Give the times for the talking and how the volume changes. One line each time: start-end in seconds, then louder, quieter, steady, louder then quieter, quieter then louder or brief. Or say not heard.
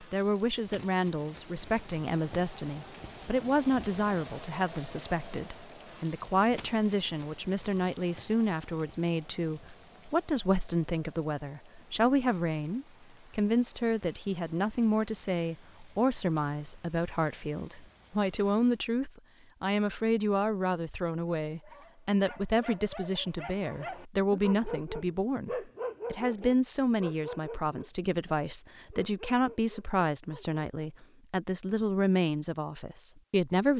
0.0-33.7 steady.